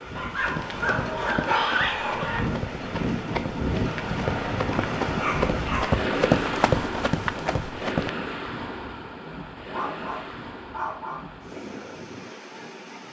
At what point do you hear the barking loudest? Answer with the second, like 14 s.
2 s.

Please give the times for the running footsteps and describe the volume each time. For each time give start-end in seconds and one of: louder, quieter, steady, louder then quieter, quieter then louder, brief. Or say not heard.
0.3-8.1 louder.